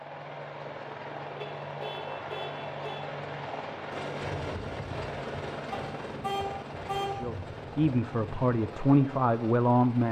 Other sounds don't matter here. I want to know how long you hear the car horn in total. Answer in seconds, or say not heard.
3 s.